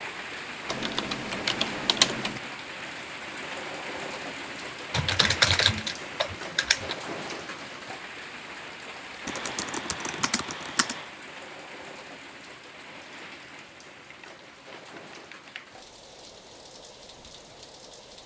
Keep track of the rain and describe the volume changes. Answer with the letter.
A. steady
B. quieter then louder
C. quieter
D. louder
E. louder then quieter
C.